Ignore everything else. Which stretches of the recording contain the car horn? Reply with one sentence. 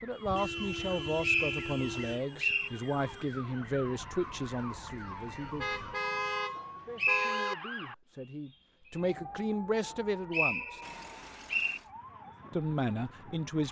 The car horn can be heard from 0.2 to 2.2 s, from 5.5 to 7.5 s and from 10.8 to 11.9 s.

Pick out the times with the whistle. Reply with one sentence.
The whistle can be heard from 0.8 to 2.7 s, from 6.5 to 7.3 s and from 9.9 to 11.8 s.